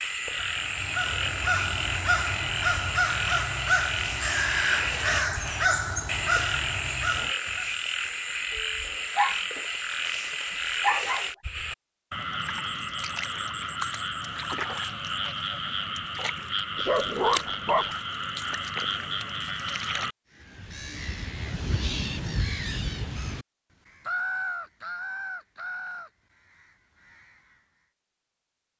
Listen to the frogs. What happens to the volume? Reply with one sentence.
The volume of the frogs stays about the same.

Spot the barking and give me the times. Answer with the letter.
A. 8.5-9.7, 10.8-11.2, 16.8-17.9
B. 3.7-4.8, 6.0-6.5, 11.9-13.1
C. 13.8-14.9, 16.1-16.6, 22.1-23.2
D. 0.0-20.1
A.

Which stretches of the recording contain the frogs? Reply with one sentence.
The frogs can be heard from 0.0 to 20.1 s.